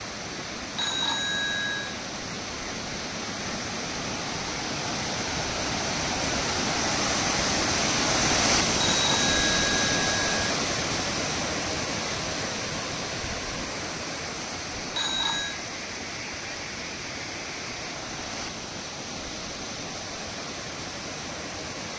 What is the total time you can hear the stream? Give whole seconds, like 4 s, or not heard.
22 s.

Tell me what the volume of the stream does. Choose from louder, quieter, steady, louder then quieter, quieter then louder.
louder then quieter.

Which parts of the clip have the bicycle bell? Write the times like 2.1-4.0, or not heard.
0.8-2.0, 8.8-10.3, 14.9-15.6.